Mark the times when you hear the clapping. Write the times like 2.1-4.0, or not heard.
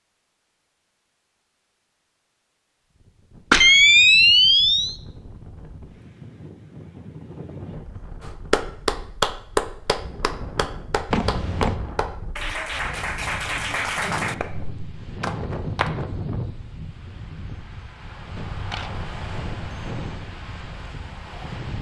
8.2-15.9.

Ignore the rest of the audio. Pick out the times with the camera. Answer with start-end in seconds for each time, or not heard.
3.5-5.0, 11.1-11.8, 18.4-20.2.